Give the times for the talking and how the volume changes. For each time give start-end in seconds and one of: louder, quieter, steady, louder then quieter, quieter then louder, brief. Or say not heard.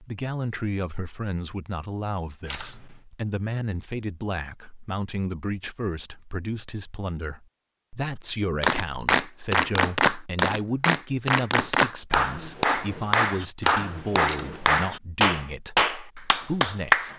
0.0-17.1 steady.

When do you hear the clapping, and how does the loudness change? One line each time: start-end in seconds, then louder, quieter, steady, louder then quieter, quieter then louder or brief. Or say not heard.
8.6-17.1 steady.